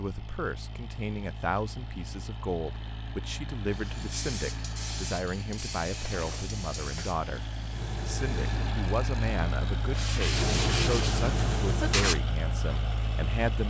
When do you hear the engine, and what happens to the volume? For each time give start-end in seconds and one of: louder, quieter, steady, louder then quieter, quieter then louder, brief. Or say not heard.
0.0-13.6 louder.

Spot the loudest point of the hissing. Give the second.
11 s.